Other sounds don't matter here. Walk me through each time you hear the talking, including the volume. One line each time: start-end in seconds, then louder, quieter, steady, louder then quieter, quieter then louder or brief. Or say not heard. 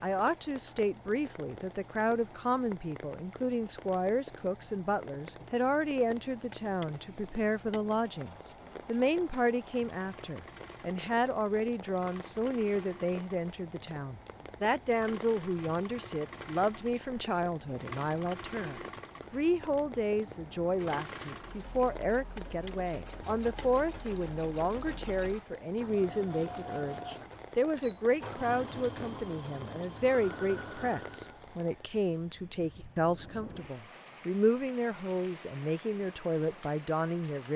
0.0-37.5 steady.